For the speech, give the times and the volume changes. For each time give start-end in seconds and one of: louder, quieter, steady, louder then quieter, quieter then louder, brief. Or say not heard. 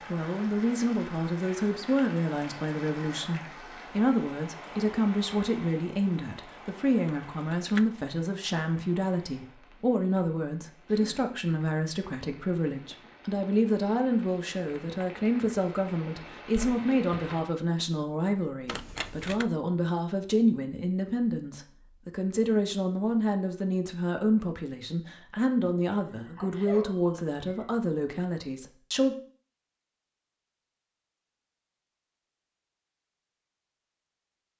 0.0-29.1 steady.